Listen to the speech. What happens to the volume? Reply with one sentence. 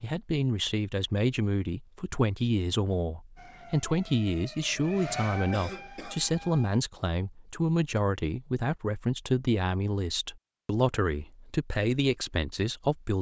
The loudness of the speech stays about the same.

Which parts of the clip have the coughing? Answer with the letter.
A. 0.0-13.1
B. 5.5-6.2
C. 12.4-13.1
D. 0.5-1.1
B.